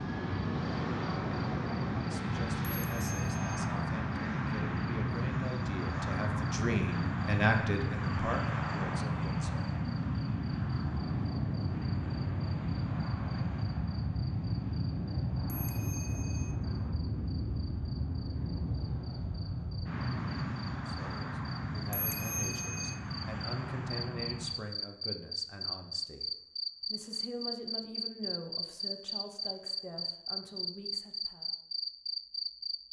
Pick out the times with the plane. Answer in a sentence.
The plane can be heard from 0.0 to 24.7 s.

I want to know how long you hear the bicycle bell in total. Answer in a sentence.
The bicycle bell can be heard for 3 seconds in total.